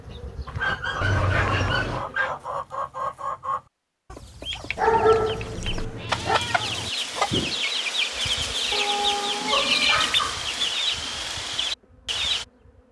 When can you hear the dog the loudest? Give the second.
5 s.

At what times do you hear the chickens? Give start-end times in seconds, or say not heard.
0.5-12.4.